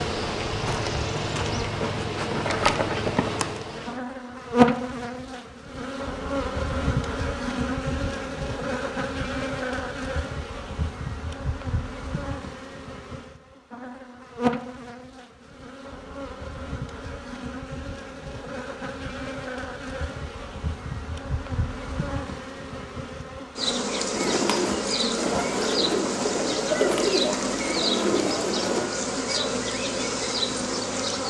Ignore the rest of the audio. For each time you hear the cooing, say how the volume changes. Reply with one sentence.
You can hear the cooing from 24.1 to 28.9 s, at a steady volume.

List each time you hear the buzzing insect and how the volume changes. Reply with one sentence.
The buzzing insect can be heard from 0.0 to 31.2 s, getting quieter then louder.